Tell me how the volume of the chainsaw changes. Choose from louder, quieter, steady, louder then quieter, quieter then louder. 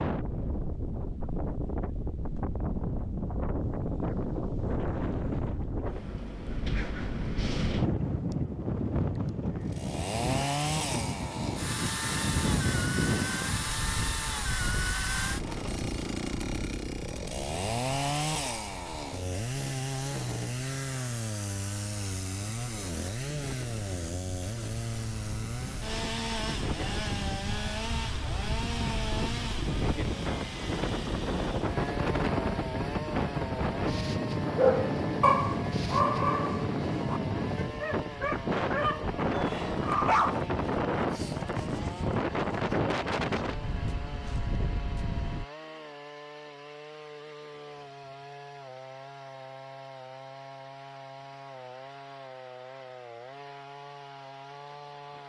quieter.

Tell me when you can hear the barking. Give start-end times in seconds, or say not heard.
34.5-40.4.